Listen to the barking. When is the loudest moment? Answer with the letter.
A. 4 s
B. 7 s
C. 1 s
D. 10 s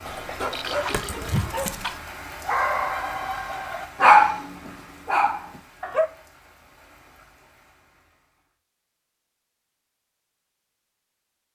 A.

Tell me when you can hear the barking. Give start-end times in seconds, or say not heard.
0.1-6.1.